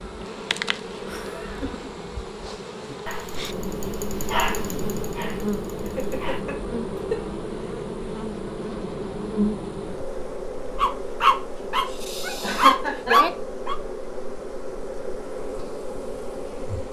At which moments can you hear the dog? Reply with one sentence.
You can hear the dog from 2.9 to 6.5 s and from 10.8 to 13.8 s.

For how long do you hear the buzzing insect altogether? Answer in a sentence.
You can hear the buzzing insect for 17 seconds altogether.